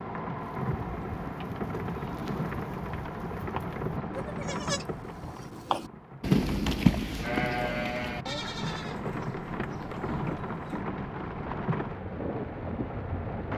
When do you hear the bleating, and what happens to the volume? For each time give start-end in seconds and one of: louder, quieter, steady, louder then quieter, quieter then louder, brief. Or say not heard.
0.3-10.8 louder then quieter.